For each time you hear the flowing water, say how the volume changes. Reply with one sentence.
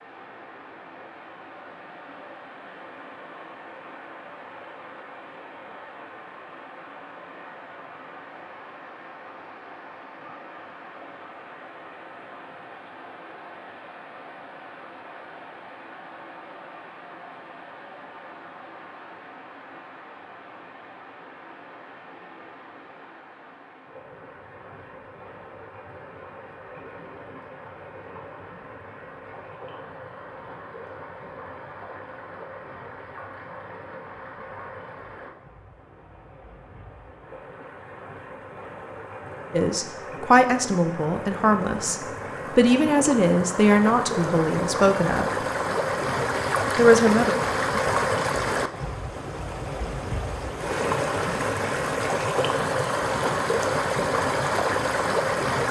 You can hear the flowing water from 0.0 to 55.6 s, getting louder.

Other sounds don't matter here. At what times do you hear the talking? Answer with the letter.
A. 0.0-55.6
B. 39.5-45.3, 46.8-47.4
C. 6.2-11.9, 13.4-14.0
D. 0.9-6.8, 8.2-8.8
B.